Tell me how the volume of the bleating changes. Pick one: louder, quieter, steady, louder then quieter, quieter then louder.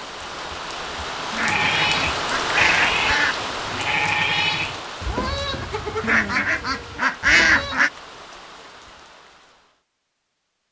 quieter.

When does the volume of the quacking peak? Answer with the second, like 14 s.
7 s.